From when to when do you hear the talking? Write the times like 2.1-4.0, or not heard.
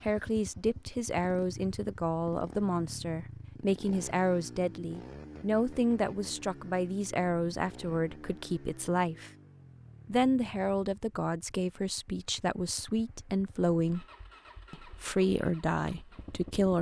0.0-9.3, 10.1-14.1, 14.7-16.7.